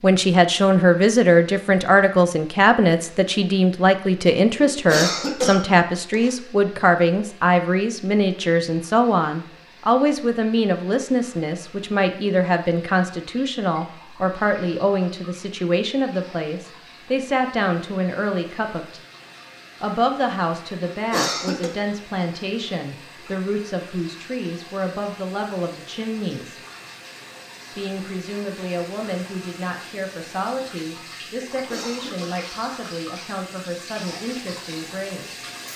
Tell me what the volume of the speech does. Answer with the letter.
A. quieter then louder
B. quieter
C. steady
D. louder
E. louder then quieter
B.